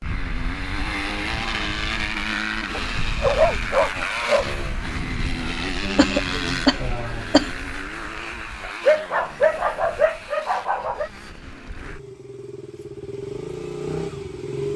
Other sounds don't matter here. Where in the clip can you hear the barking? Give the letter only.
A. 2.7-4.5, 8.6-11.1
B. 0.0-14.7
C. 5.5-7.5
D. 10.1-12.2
A.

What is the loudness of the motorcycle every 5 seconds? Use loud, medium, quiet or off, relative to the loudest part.
loud, loud, medium.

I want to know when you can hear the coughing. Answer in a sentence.
The coughing can be heard from 5.5 to 7.5 s.